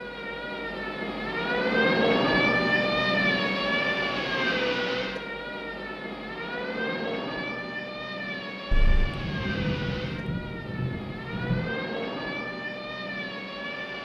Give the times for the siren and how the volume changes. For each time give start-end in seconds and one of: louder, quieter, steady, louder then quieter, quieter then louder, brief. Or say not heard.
0.0-13.9 quieter.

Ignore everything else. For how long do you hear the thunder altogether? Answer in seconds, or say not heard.
3 s.